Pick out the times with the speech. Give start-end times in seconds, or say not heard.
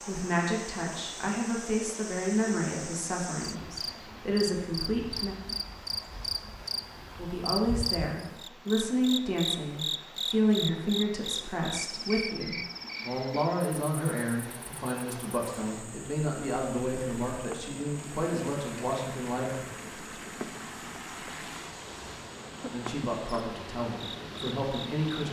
0.1-5.3, 7.2-19.5, 22.6-25.2.